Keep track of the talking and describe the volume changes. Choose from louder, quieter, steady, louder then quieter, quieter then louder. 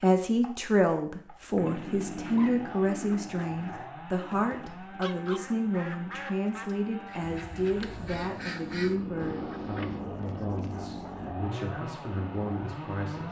quieter.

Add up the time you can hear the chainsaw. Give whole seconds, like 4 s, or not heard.
13 s.